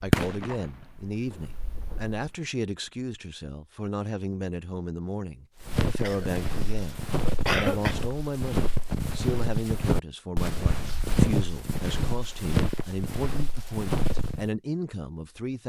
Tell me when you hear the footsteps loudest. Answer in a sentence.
The volume of the footsteps peaks at 11 seconds.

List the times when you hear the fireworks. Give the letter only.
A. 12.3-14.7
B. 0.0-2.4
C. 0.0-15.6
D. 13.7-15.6
B.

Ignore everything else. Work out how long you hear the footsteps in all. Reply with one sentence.
You can hear the footsteps for 9 seconds altogether.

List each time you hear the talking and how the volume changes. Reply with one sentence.
You can hear the talking from 0.0 to 15.6 s, at a steady volume.